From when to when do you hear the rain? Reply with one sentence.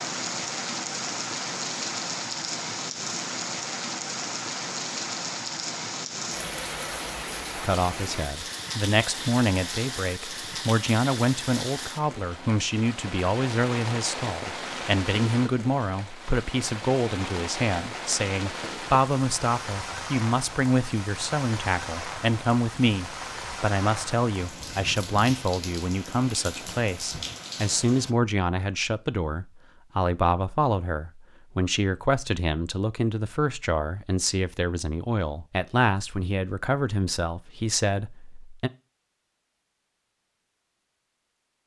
The rain can be heard from 0.0 to 28.1 s.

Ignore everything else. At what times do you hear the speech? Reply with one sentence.
You can hear the speech from 7.5 to 38.7 s.